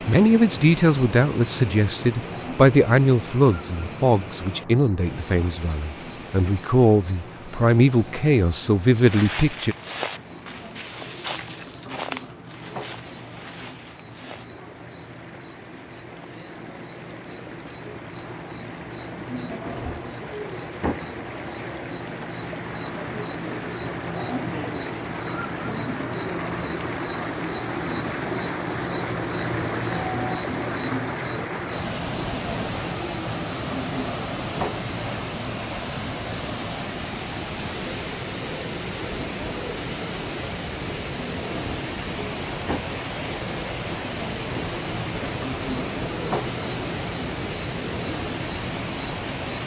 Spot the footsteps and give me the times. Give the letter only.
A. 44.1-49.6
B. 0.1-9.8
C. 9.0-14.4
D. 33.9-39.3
C.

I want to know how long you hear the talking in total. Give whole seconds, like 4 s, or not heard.
10 s.